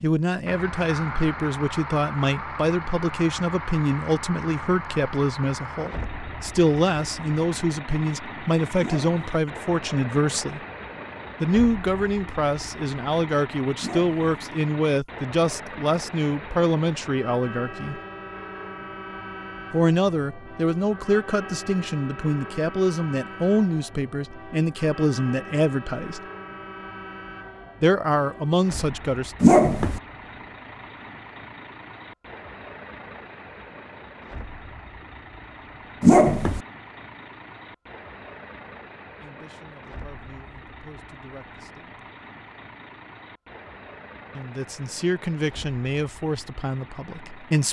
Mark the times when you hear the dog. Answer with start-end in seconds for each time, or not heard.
8.8-9.4, 13.8-14.3, 29.4-30.0, 36.0-36.6.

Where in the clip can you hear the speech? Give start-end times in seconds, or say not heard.
0.0-10.6, 11.4-18.0, 19.7-26.2, 27.8-29.4, 39.2-42.0, 44.3-47.6.